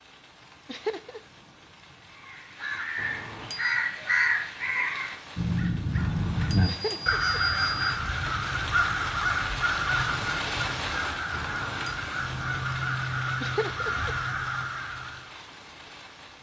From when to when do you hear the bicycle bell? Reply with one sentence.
The bicycle bell can be heard from 3.0 to 3.8 s, from 6.0 to 8.0 s and from 11.3 to 11.9 s.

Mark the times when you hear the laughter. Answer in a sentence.
The laughter can be heard from 0.7 to 1.2 s, from 6.7 to 7.2 s and from 13.4 to 14.1 s.